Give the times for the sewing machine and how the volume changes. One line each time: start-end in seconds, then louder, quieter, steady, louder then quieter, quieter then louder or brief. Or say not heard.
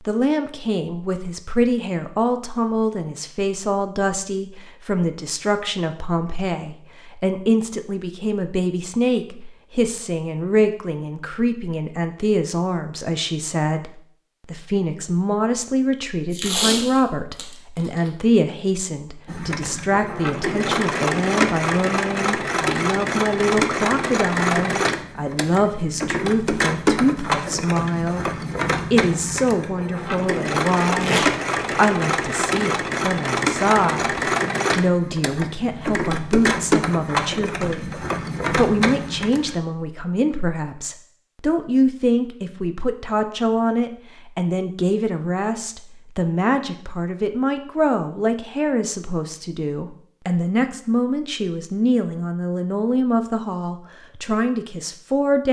19.2-39.6 steady.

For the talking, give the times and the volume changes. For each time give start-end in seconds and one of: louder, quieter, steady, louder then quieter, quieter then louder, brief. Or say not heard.
0.0-28.3 steady
28.9-55.4 steady.